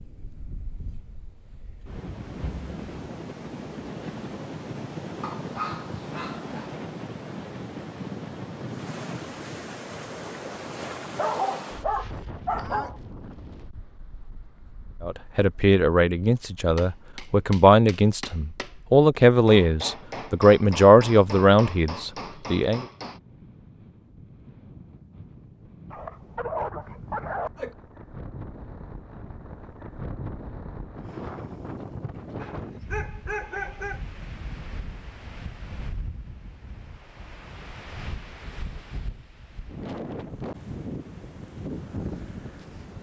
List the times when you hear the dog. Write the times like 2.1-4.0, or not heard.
5.2-6.7, 11.2-13.0, 25.9-27.8, 32.4-34.0.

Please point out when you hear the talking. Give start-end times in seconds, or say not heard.
15.0-22.9.